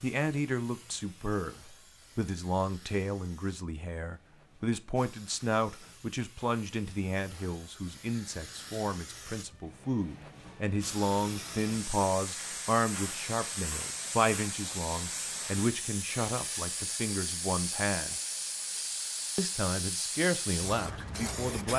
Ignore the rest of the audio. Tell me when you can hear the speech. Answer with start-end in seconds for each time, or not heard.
0.0-18.1, 19.4-21.7.